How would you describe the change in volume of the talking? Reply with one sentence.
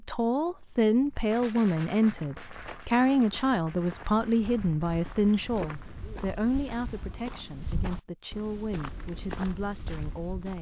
The volume of the talking goes down.